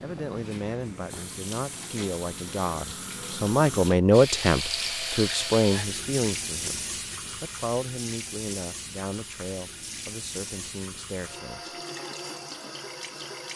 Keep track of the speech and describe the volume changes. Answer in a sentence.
The loudness of the speech goes up, then down.